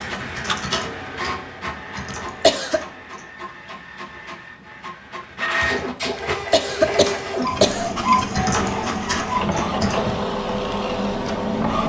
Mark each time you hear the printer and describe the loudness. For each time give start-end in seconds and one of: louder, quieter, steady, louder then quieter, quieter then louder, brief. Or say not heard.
0.0-11.8 quieter then louder.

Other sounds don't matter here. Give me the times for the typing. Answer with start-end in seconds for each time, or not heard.
0.0-3.3, 5.4-10.2.